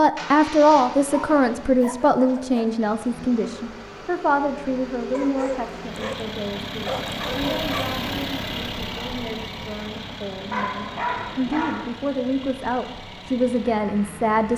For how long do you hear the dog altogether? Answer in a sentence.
You can hear the dog for 5 seconds altogether.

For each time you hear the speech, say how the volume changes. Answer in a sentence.
You can hear the speech from 0.0 to 14.5 s, getting quieter then louder.